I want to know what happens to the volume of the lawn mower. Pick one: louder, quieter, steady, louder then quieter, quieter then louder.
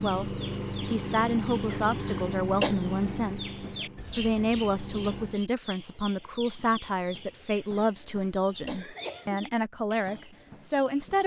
quieter.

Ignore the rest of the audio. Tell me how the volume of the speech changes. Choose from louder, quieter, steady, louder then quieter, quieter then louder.
steady.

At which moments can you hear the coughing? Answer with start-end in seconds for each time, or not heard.
1.7-2.8, 7.8-9.4.